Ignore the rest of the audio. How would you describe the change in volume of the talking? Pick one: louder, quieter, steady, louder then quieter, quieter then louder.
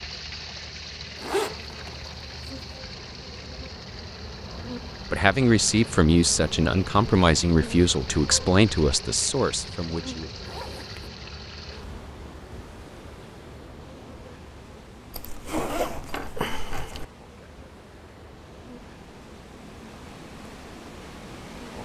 quieter.